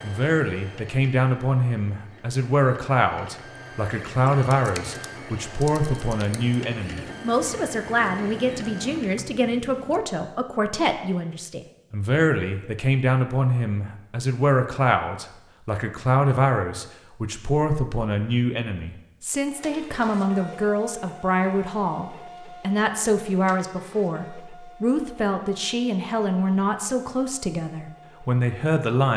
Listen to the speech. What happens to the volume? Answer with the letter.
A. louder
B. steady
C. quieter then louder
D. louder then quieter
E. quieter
B.